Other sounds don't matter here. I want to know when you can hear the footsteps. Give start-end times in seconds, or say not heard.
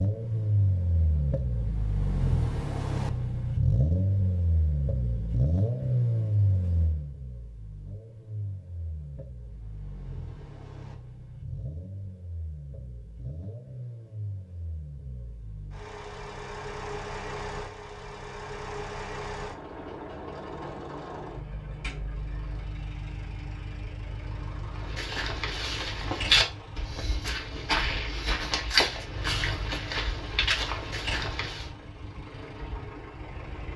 24.8-31.7.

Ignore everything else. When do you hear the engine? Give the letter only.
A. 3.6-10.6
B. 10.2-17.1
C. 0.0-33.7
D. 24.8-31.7
C.